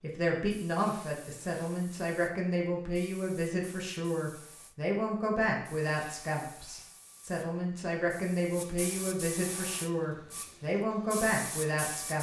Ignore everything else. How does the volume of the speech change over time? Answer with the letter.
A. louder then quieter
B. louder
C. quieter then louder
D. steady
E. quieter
D.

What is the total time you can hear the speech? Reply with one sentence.
You can hear the speech for 12 seconds altogether.